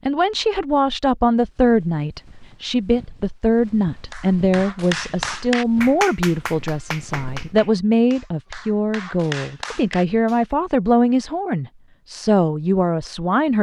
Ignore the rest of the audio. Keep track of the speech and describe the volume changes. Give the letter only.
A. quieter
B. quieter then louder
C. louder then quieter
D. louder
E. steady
E.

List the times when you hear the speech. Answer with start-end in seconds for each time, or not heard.
0.1-13.5.